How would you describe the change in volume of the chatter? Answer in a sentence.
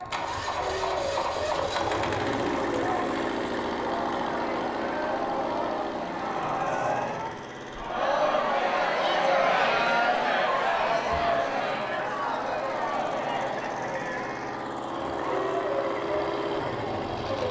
The volume of the chatter goes up, then down.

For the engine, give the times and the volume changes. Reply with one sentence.
The engine can be heard from 0.0 to 17.4 s, getting quieter then louder.